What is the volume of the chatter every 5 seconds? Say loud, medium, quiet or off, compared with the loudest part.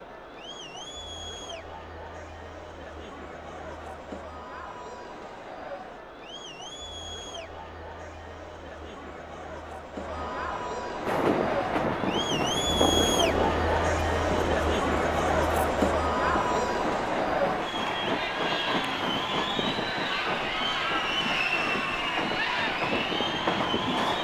quiet, quiet, loud, loud, loud.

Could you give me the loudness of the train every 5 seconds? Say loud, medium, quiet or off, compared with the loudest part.
off, off, loud, loud, loud.